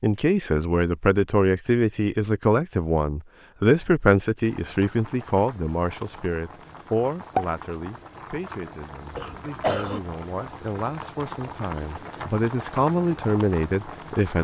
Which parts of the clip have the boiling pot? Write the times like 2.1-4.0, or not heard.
4.4-14.3.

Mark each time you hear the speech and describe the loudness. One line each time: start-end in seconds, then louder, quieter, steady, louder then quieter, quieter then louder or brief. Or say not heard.
0.0-14.3 quieter then louder.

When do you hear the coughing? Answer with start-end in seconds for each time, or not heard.
9.2-10.0.